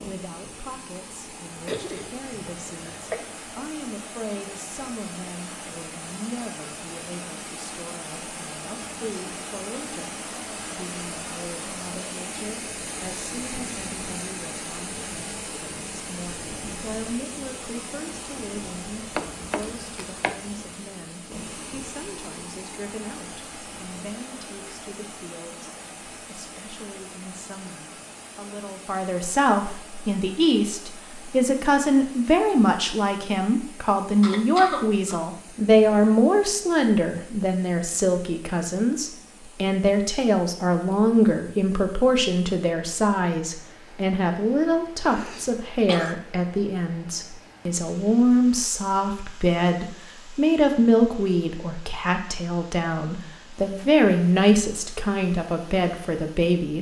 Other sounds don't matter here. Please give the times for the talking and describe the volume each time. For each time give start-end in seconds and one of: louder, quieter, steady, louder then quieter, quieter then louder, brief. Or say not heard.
0.0-56.7 louder.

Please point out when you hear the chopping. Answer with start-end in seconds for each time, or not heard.
19.1-20.8.